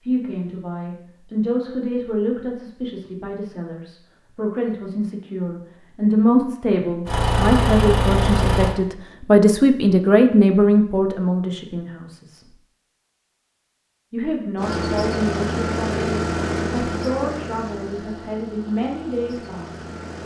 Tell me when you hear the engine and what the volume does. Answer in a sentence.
The engine can be heard briefly from 7.0 to 8.8 s; and from 14.6 to 20.2 s, getting quieter.